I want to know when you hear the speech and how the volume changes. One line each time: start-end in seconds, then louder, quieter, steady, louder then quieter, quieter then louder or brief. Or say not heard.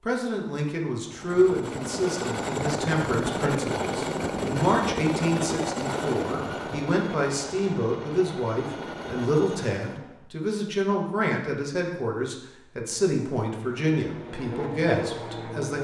0.1-15.7 steady.